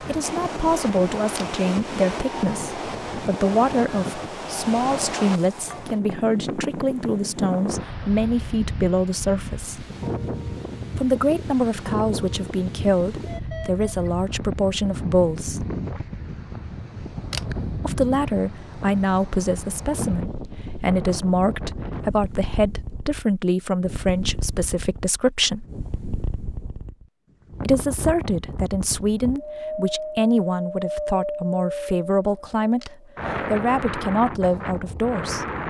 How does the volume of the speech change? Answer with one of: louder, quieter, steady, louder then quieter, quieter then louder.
steady.